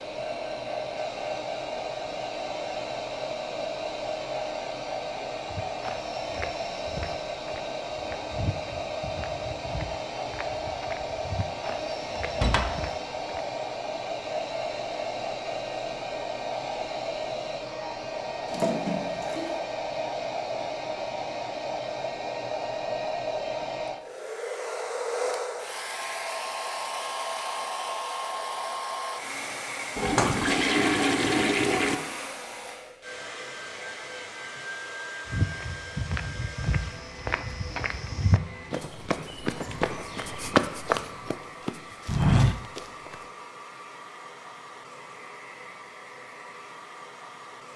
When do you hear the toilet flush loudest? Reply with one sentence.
The volume of the toilet flush peaks at 31 seconds.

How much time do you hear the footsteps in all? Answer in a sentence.
The footsteps can be heard for 16 seconds in total.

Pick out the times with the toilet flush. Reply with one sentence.
The toilet flush can be heard from 18.4 to 19.6 s and from 29.9 to 31.9 s.